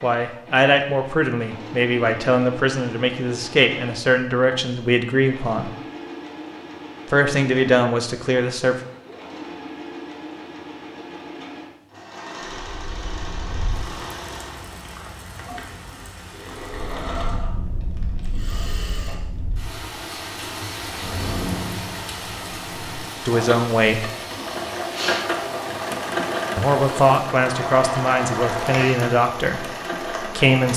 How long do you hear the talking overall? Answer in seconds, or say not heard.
12 s.